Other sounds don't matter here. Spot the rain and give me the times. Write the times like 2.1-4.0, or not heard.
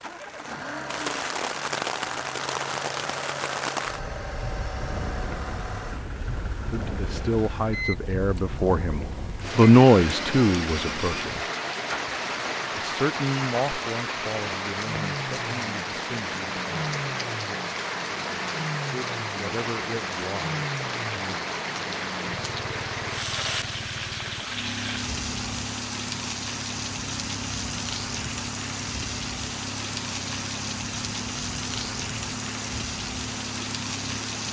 0.0-34.4.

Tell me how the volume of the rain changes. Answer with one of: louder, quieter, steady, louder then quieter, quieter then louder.
steady.